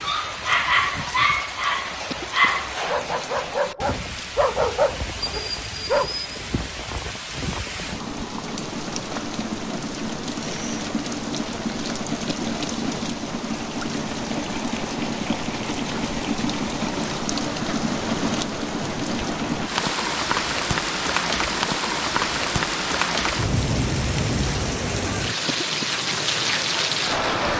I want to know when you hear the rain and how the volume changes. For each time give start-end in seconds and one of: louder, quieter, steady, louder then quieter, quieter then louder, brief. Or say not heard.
0.0-27.5 louder.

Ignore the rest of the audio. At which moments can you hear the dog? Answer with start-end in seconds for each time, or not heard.
0.0-6.2.